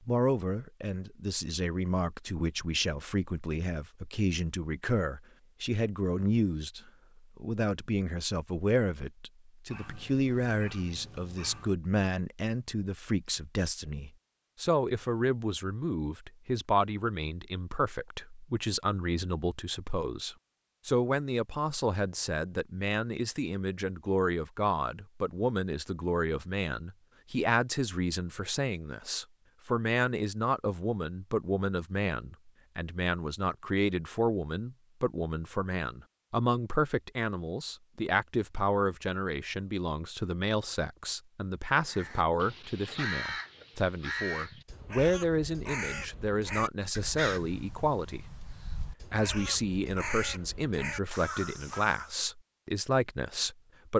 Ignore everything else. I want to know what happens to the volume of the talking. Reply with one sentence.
The loudness of the talking stays about the same.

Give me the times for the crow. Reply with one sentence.
You can hear the crow from 41.9 to 52.1 s.